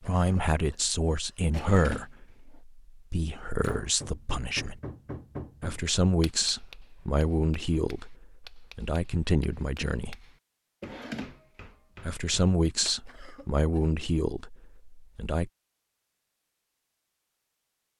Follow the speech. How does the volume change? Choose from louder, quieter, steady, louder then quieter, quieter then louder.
steady.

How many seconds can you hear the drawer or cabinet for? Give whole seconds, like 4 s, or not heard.
2 s.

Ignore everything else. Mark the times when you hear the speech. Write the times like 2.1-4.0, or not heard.
0.0-4.8, 5.6-10.2, 12.1-15.5.